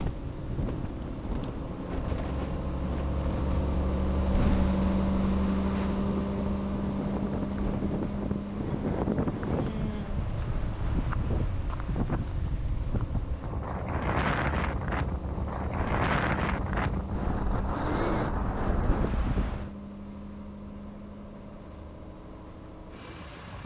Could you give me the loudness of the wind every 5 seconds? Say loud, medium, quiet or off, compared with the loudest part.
medium, loud, loud, loud, off.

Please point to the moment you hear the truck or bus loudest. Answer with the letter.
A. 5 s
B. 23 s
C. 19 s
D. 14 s
A.